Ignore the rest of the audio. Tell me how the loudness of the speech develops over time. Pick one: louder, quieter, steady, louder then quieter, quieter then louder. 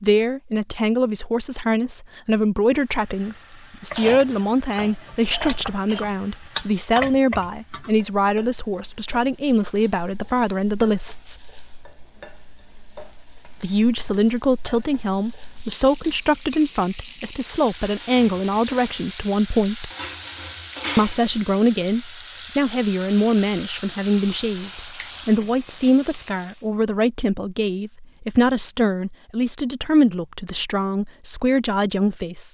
steady.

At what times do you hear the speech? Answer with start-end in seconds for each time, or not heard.
0.0-11.4, 13.6-19.9, 20.9-32.5.